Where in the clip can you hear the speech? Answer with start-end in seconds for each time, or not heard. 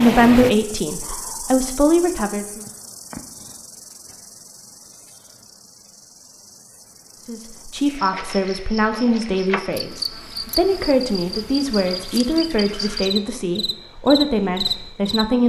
0.0-2.6, 7.2-15.4.